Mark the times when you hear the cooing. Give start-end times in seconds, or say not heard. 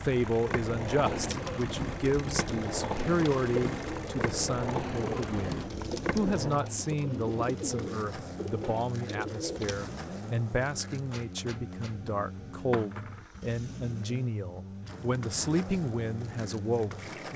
1.0-9.8.